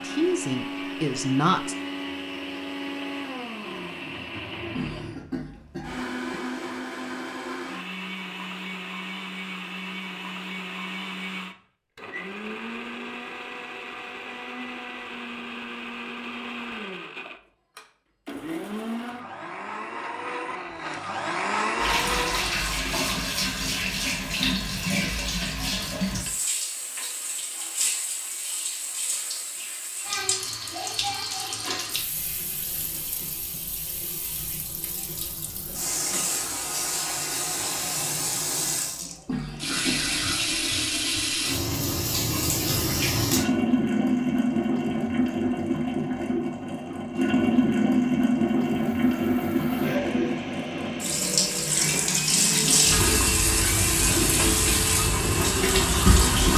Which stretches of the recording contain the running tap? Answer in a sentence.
The running tap can be heard from 21.8 to 56.5 s.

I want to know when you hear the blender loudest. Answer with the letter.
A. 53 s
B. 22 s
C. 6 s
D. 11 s
B.